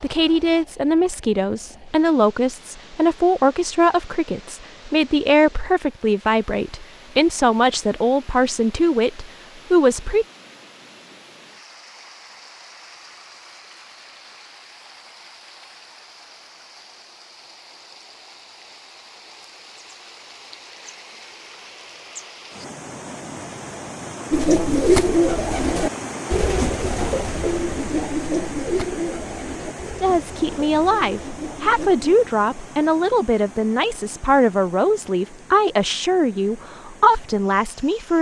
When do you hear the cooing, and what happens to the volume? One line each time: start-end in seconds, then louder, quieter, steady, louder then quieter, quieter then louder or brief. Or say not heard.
24.3-32.1 quieter.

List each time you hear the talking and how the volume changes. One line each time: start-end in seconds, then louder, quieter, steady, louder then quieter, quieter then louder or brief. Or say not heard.
0.0-10.2 steady
30.0-38.1 steady.